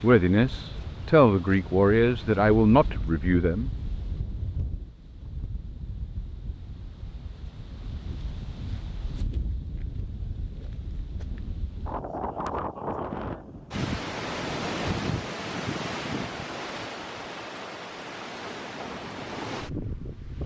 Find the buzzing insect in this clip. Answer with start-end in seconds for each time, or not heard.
not heard.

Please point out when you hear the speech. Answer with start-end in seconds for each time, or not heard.
0.0-3.7.